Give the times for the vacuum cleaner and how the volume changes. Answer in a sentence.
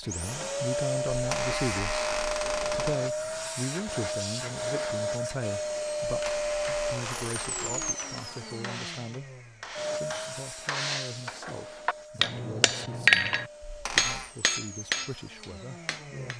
You can hear the vacuum cleaner from 0.0 to 16.3 s, getting quieter.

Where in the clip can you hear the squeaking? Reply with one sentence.
The squeaking can be heard from 1.1 to 3.0 s, from 6.0 to 8.0 s and from 13.6 to 14.3 s.